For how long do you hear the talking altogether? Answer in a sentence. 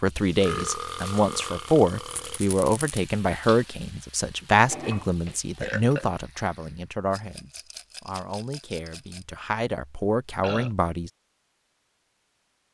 You can hear the talking for 11 seconds altogether.